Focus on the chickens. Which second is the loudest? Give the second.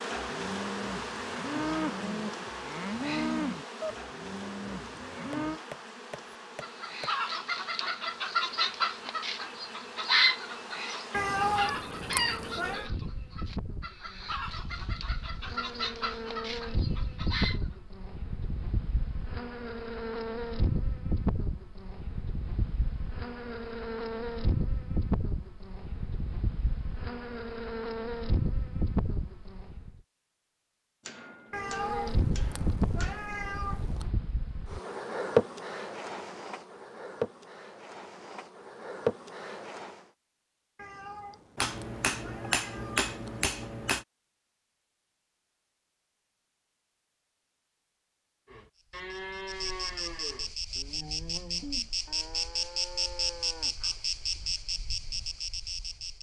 10 s.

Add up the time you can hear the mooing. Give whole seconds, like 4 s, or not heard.
11 s.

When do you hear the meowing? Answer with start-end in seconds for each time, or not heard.
11.1-12.9, 31.5-34.1, 40.8-43.4.